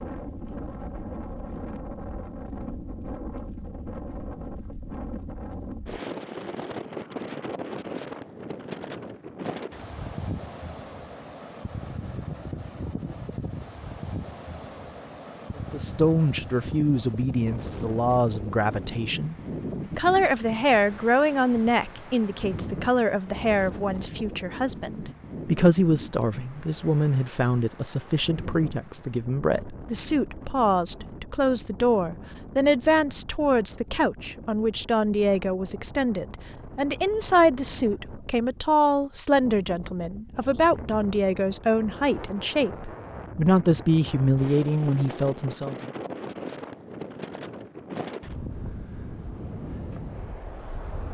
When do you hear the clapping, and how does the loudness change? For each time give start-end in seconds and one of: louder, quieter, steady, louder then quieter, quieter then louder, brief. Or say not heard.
not heard.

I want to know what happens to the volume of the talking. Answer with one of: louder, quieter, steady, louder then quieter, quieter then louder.
steady.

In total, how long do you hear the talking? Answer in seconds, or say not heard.
30 s.